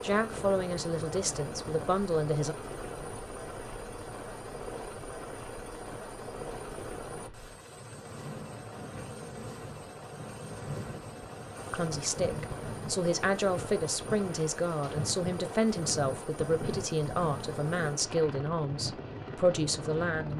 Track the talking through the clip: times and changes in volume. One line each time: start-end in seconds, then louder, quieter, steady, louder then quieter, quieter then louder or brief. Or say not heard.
0.0-2.5 brief
11.7-20.3 steady.